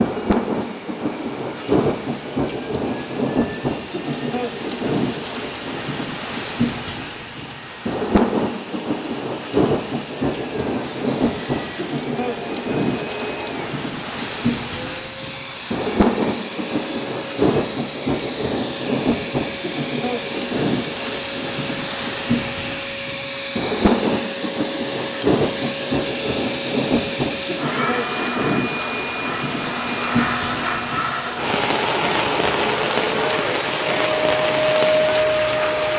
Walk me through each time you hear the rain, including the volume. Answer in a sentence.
You can hear the rain from 0.0 to 35.9 s, at a steady volume.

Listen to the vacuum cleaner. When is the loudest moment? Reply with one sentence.
The loudest moment of the vacuum cleaner is at 35 seconds.